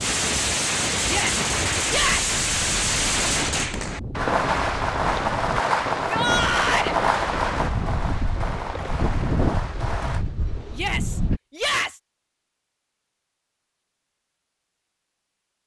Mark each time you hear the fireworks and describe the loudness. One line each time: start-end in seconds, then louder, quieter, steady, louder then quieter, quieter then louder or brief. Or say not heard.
0.0-10.2 quieter.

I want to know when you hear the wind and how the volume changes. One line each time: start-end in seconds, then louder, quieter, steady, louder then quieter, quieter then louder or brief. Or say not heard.
0.0-11.4 louder.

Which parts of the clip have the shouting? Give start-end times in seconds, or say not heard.
1.1-2.4, 6.0-7.0, 10.7-12.0.